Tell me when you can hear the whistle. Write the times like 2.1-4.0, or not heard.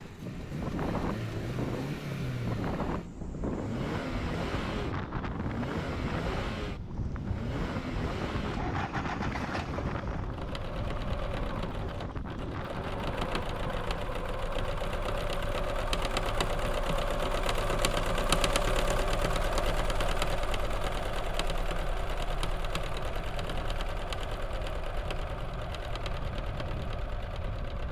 not heard.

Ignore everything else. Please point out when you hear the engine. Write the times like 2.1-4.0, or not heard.
0.0-27.8.